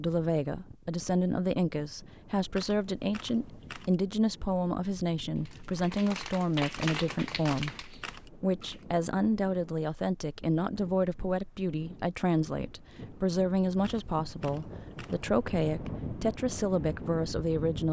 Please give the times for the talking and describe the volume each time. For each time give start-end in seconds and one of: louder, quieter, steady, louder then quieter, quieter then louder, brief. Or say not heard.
0.0-17.8 steady.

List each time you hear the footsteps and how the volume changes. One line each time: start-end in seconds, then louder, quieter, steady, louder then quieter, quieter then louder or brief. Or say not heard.
not heard.